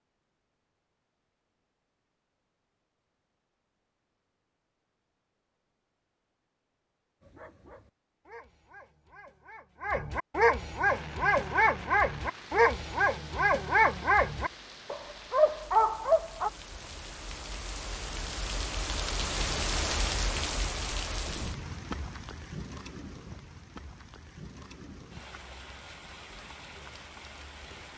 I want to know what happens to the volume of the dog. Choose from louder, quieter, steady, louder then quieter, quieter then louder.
louder.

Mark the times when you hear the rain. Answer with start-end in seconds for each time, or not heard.
10.8-27.9.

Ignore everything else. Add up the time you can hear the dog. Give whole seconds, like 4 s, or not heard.
9 s.